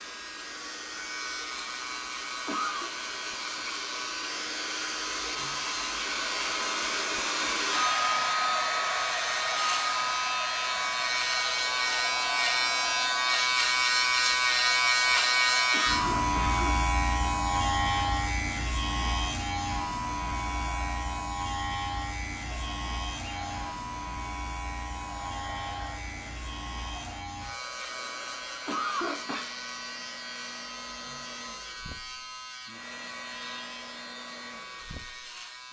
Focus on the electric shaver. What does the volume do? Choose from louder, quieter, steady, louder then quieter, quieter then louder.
louder then quieter.